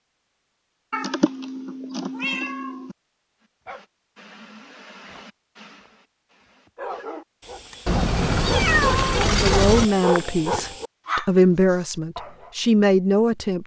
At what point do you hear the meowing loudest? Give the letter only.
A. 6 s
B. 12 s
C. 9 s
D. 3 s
C.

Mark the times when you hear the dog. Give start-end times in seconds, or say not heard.
3.6-12.6.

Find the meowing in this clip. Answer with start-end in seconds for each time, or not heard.
0.9-3.0, 7.8-9.9.